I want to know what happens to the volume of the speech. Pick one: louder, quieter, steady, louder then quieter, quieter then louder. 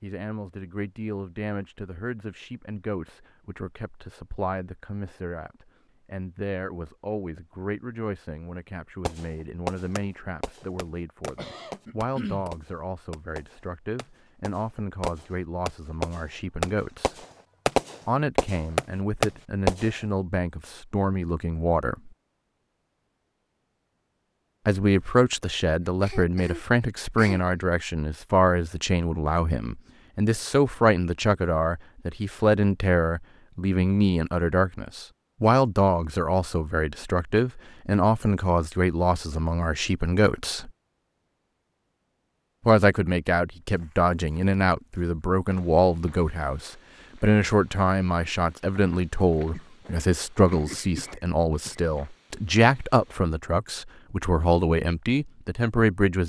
louder.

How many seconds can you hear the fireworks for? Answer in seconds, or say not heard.
11 s.